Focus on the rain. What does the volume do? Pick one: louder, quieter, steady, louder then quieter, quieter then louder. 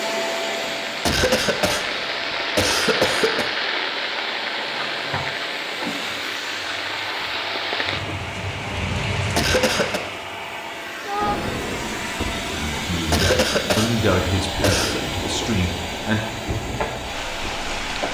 quieter.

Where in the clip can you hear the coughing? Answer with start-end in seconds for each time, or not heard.
1.1-3.5, 9.3-10.0, 13.1-15.0.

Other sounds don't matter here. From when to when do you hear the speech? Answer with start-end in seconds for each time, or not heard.
12.5-16.2.